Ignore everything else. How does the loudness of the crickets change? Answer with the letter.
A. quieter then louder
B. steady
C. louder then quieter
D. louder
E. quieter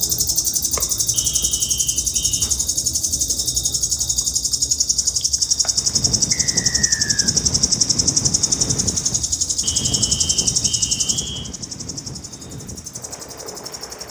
E.